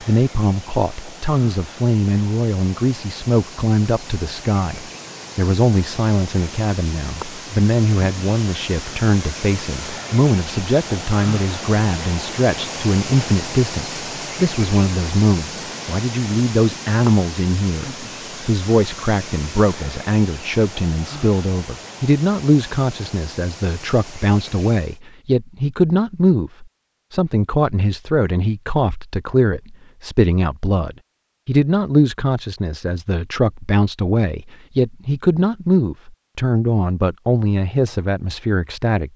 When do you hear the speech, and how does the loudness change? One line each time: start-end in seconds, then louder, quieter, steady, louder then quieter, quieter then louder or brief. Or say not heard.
0.1-39.1 steady.